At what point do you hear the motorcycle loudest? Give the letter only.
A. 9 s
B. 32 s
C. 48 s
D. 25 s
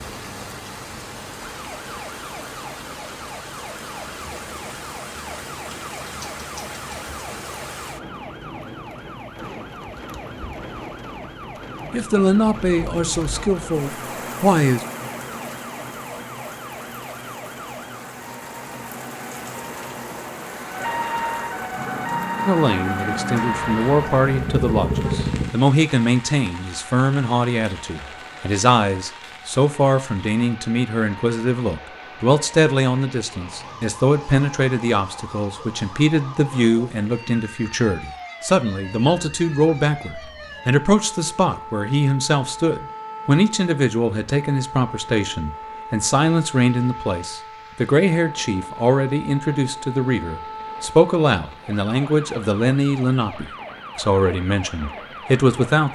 D.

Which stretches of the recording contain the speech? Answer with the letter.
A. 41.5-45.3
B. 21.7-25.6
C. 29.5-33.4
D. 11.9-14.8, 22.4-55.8
D.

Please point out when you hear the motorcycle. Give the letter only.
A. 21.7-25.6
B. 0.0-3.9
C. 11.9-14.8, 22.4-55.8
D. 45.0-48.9
A.